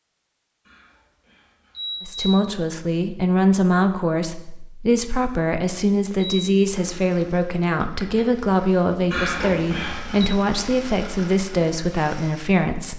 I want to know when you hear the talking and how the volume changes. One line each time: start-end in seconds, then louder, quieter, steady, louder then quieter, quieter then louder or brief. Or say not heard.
2.0-12.9 steady.